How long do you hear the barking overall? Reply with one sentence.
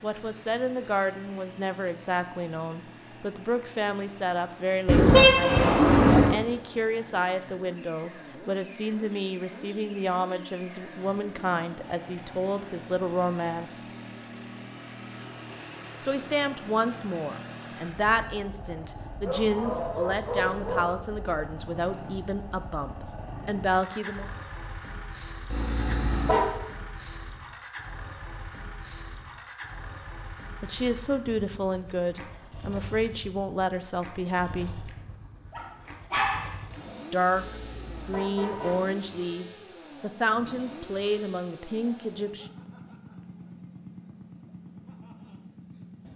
The barking can be heard for 3 seconds in total.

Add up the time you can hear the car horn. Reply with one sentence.
You can hear the car horn for 4 seconds altogether.